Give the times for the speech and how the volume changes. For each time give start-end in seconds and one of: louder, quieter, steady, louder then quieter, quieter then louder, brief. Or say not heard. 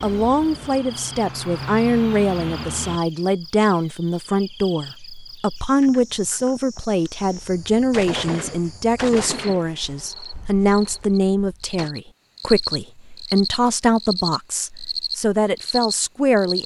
0.0-16.6 steady.